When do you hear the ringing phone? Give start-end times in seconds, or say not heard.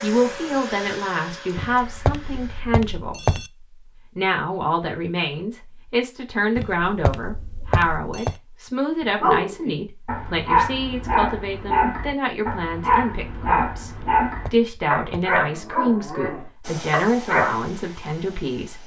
1.6-3.5, 6.5-8.3, 13.9-15.4.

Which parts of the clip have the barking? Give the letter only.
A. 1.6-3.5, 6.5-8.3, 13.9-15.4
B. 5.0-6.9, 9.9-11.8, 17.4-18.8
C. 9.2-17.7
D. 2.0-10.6
C.